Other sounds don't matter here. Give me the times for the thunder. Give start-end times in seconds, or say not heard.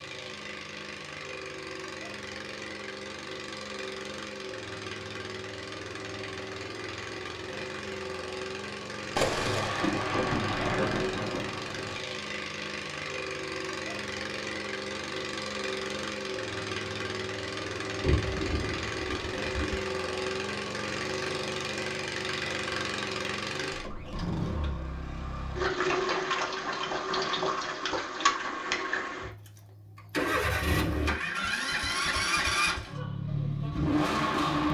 9.2-12.0, 18.0-19.8.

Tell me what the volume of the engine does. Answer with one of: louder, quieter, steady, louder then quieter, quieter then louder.
louder.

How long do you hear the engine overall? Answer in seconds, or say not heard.
35 s.